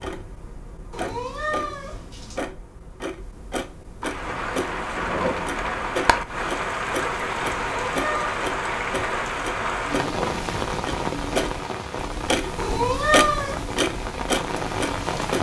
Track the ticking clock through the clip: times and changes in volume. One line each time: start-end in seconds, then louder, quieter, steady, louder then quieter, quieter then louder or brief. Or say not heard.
0.0-15.3 louder.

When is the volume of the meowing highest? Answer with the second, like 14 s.
13 s.